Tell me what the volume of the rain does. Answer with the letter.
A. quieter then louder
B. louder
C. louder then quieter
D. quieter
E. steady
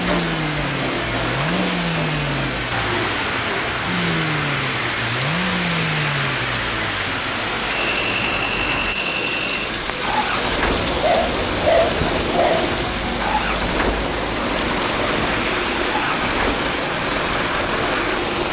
E.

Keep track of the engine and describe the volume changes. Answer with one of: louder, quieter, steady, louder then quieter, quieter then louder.
steady.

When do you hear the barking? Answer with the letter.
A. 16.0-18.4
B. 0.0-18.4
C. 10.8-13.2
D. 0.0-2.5
C.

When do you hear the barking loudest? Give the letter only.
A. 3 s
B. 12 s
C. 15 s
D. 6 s
B.